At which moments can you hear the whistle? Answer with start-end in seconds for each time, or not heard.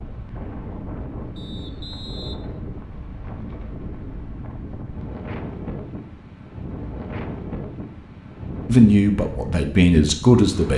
1.4-2.4.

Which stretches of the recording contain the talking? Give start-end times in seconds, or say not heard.
8.7-10.7.